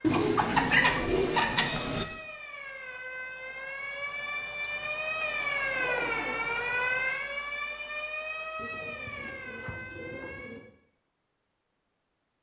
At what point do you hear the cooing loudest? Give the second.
1 s.